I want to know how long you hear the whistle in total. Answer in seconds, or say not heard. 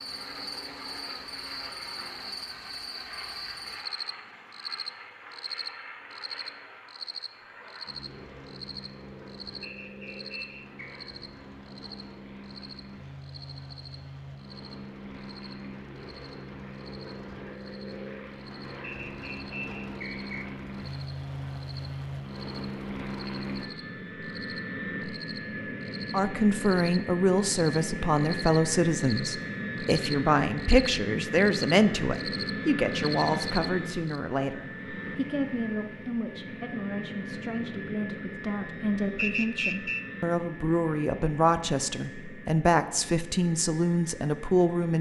4 s.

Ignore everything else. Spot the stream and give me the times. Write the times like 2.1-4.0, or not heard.
not heard.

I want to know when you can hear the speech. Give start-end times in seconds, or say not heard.
26.1-44.9.